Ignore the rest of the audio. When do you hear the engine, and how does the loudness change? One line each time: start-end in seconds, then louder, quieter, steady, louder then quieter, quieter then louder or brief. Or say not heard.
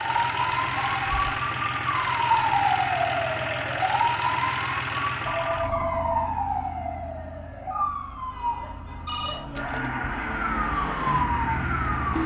0.0-12.2 quieter then louder.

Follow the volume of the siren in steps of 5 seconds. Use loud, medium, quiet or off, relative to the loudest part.
loud, medium, loud.